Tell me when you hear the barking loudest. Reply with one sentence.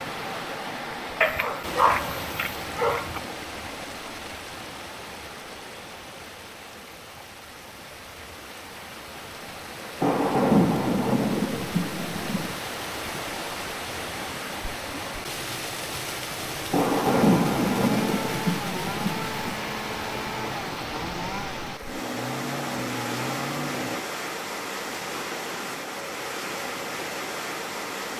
The volume of the barking peaks at 2 seconds.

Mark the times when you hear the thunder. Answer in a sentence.
The thunder can be heard from 10.0 to 12.6 s and from 16.7 to 19.6 s.